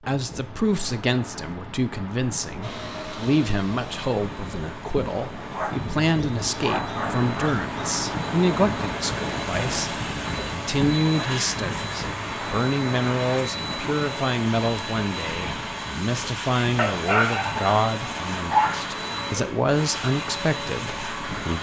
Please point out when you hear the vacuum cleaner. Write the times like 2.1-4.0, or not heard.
2.6-21.5.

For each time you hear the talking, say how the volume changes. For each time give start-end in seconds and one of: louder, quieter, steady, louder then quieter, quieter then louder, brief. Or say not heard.
0.0-21.5 steady.